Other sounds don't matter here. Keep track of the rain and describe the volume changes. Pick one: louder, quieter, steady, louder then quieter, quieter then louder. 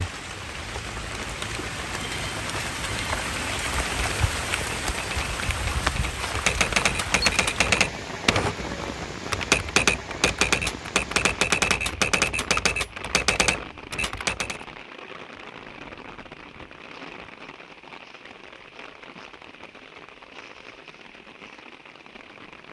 quieter.